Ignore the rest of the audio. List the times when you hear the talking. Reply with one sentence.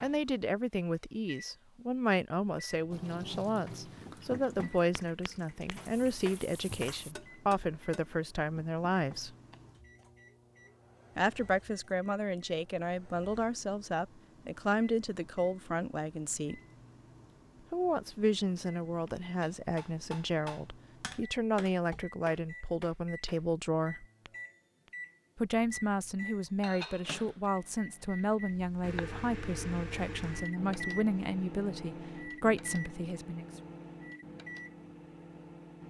You can hear the talking from 0.0 to 9.3 s, from 11.2 to 16.6 s, from 17.7 to 24.1 s and from 25.4 to 33.5 s.